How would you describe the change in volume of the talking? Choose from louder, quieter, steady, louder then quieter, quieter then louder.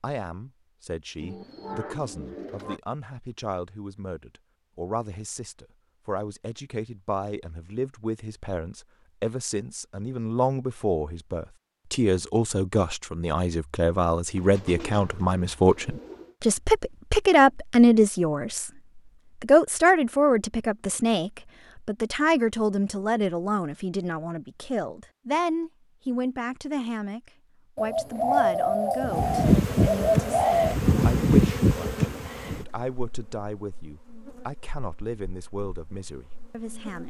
louder then quieter.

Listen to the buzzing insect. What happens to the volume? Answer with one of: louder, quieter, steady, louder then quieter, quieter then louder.
quieter.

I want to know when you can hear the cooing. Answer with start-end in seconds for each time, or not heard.
1.2-2.8, 14.3-16.4, 27.8-30.8.